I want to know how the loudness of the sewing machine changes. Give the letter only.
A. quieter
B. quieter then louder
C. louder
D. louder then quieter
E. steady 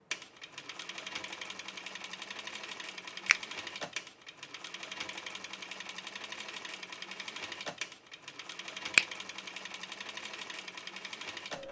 E.